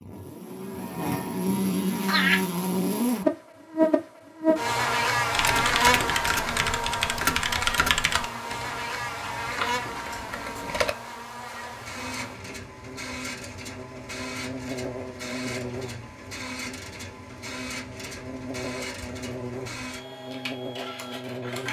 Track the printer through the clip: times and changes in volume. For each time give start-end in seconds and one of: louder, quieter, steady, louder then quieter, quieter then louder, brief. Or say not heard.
11.6-21.6 steady.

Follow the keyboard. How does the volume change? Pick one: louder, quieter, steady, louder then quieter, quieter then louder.
quieter then louder.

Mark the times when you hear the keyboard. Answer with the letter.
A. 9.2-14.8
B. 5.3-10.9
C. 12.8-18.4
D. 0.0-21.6
B.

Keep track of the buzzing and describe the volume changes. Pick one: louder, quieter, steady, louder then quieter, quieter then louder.
quieter.